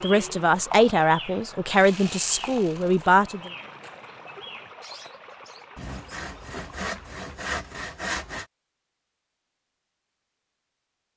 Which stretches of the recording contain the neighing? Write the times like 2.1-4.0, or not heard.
not heard.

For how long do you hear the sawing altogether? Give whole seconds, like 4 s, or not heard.
4 s.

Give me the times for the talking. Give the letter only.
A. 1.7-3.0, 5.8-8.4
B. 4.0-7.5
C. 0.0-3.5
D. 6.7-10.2
C.